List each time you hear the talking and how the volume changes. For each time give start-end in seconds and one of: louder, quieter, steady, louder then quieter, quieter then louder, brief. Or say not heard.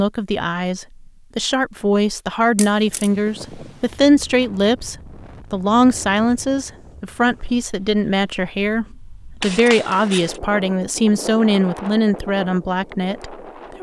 0.0-13.7 steady.